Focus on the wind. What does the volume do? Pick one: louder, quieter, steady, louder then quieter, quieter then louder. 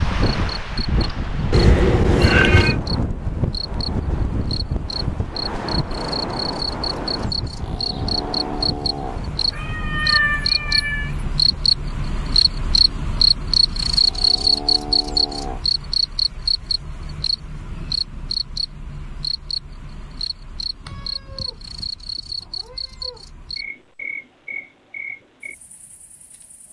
quieter.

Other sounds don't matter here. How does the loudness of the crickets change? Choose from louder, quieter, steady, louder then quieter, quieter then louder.
louder then quieter.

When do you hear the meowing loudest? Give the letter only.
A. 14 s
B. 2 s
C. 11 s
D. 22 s
B.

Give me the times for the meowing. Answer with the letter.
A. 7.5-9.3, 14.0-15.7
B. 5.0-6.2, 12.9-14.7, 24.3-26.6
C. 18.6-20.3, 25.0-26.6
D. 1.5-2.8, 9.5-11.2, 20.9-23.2
D.